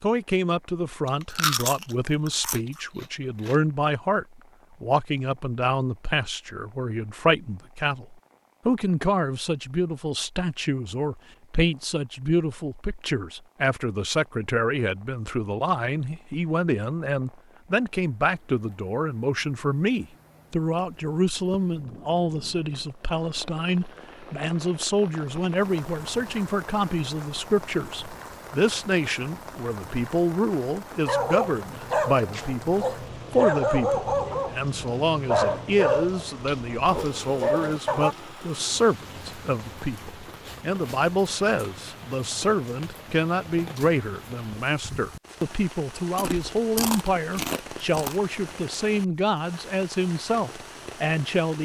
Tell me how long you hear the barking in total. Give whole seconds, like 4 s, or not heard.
7 s.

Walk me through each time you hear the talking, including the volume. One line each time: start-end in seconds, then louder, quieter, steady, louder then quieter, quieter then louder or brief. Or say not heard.
0.0-51.6 steady.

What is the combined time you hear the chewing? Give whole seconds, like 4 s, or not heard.
5 s.